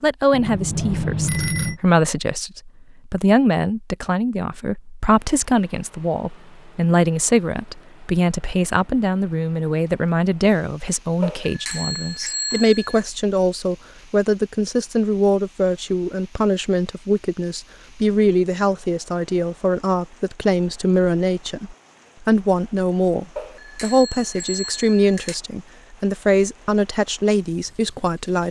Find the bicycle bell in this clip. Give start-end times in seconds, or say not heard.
0.3-1.8, 11.2-13.0, 23.4-25.4.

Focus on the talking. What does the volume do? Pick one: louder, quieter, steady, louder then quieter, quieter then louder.
steady.